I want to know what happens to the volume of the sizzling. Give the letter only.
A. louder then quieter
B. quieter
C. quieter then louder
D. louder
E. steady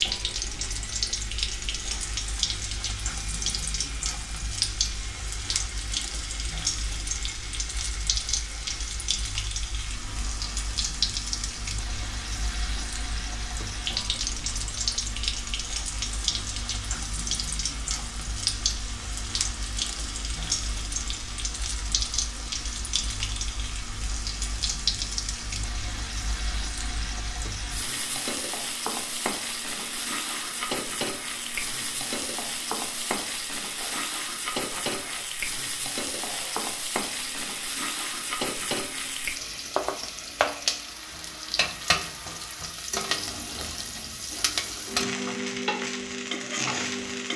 E.